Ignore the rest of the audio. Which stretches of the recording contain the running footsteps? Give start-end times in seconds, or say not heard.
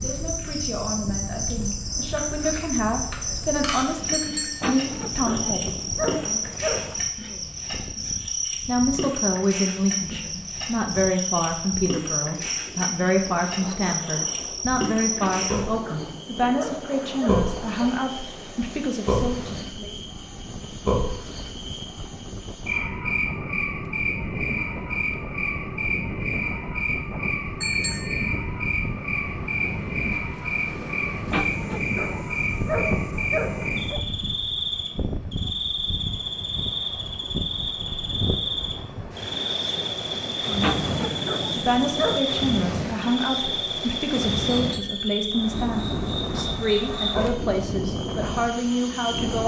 not heard.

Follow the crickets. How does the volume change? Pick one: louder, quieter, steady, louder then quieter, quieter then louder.
steady.